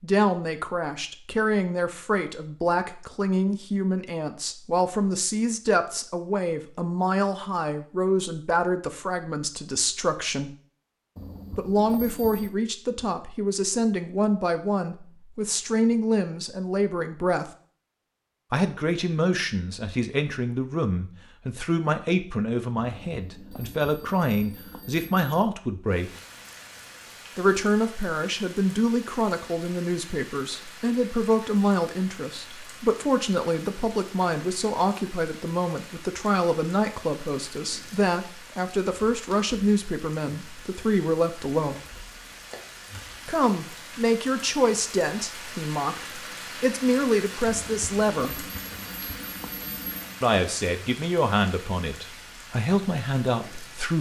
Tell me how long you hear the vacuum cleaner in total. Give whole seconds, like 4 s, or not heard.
not heard.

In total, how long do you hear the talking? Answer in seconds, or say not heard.
47 s.